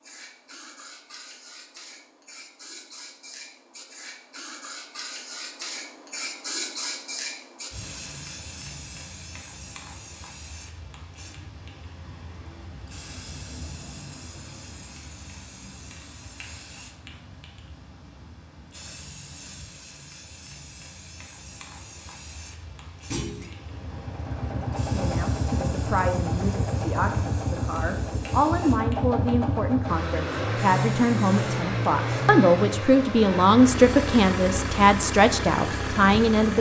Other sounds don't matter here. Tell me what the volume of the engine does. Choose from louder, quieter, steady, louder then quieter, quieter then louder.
steady.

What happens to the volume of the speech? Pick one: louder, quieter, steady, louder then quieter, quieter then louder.
louder.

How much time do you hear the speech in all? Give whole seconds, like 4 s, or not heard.
12 s.